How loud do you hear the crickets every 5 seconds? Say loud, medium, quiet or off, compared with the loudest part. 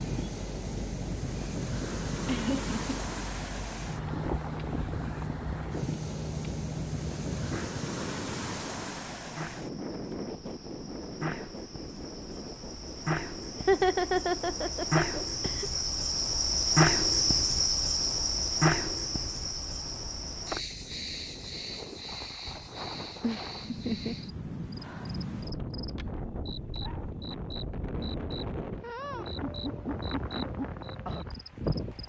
quiet, quiet, medium, loud, quiet, quiet, quiet.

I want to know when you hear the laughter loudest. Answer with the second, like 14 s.
14 s.